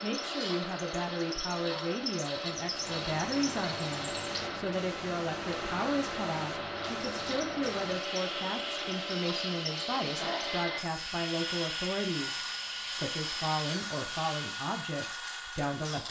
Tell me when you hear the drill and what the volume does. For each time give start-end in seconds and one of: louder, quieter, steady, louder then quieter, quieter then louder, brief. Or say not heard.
0.0-16.0 steady.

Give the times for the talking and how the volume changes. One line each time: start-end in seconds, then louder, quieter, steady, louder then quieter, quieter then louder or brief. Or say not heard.
0.0-16.0 steady.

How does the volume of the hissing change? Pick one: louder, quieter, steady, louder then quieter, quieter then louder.
steady.